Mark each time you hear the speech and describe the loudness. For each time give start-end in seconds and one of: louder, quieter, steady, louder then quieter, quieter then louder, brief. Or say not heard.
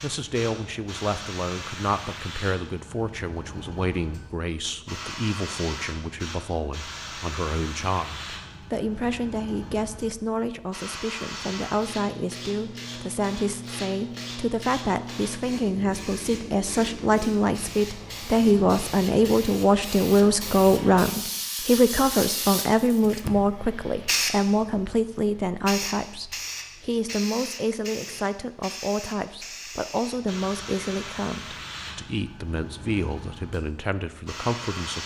0.0-35.0 louder then quieter.